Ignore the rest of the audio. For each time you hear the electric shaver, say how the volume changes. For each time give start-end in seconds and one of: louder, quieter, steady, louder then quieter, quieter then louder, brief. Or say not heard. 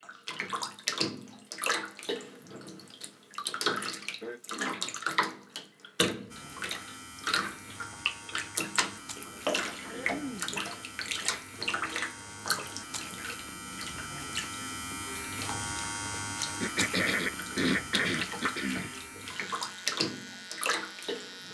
6.3-21.4 louder then quieter.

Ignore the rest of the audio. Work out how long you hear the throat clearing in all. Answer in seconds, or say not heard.
4 s.